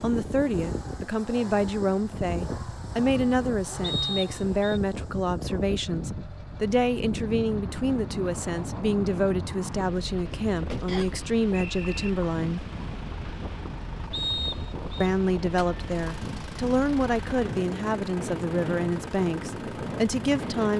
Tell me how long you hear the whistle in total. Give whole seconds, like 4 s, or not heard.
3 s.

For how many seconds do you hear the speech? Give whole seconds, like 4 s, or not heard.
18 s.